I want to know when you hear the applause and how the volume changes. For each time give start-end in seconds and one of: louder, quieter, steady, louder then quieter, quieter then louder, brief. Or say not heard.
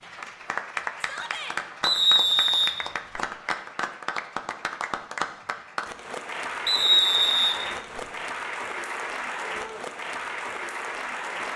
0.0-11.5 steady.